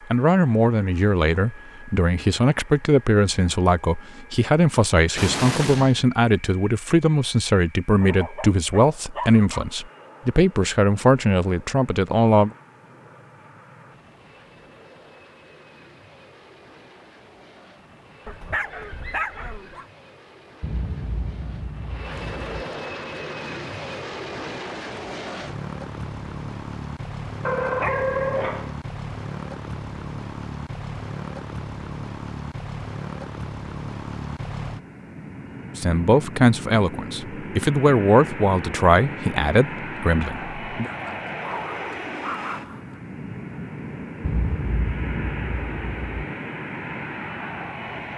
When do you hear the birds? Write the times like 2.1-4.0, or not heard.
not heard.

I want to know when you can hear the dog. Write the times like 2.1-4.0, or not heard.
8.0-9.7, 18.2-19.9, 27.4-28.8, 40.8-43.0.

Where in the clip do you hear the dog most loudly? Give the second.
28 s.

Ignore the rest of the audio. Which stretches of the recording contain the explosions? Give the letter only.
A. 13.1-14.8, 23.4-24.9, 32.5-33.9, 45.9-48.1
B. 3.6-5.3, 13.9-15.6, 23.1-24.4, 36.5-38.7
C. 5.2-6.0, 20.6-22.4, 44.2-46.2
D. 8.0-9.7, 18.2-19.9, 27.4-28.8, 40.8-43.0
C.